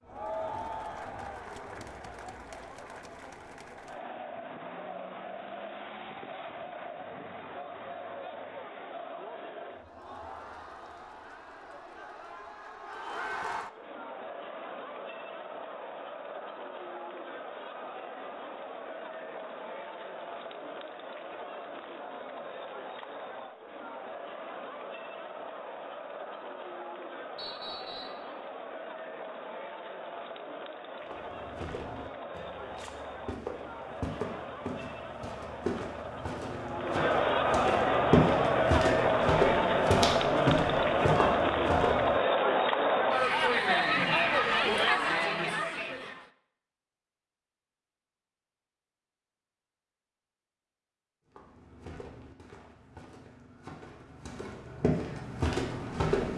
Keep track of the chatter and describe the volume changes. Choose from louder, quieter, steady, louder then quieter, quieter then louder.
louder.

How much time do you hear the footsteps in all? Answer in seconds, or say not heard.
16 s.